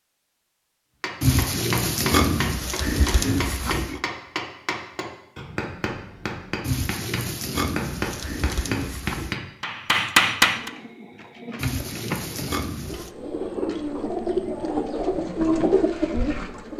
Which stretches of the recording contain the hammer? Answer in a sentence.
You can hear the hammer from 1.0 to 10.7 s.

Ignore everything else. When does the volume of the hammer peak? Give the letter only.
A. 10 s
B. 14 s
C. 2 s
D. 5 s
A.